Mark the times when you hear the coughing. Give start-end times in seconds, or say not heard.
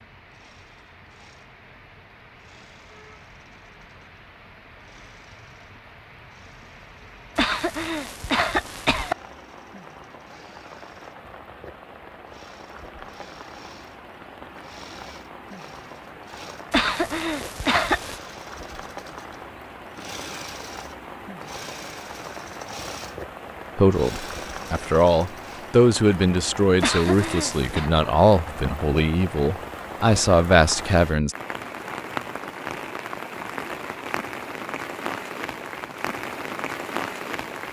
7.3-9.2, 16.7-18.2, 26.8-27.9.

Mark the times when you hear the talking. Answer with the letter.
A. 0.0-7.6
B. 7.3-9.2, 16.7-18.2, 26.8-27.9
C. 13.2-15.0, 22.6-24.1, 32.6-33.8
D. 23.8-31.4
D.